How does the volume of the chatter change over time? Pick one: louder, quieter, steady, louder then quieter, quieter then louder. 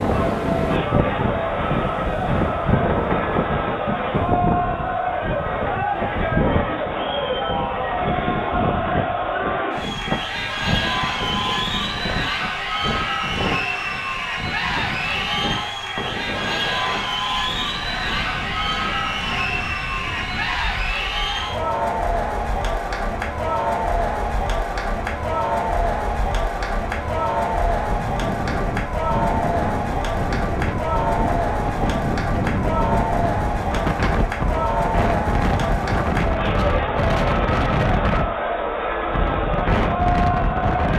steady.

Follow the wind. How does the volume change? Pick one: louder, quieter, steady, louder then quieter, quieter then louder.
quieter then louder.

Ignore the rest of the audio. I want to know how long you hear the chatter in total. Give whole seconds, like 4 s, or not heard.
41 s.